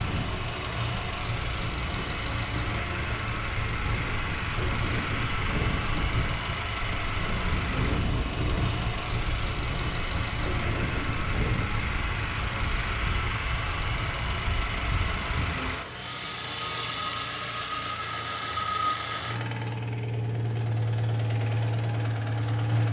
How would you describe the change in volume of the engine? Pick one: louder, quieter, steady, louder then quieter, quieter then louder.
steady.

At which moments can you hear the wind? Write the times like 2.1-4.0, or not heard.
0.1-15.3.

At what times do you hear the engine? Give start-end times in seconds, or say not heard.
0.0-22.8.